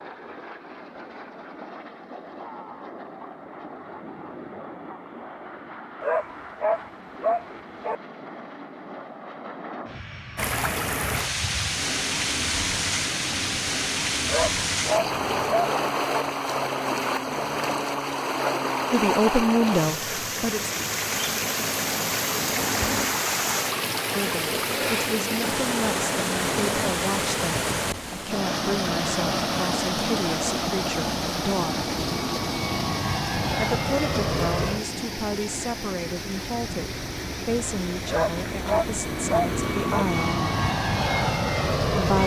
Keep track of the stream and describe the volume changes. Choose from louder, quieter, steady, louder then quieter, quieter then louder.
quieter.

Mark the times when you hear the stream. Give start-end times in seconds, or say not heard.
10.3-42.2.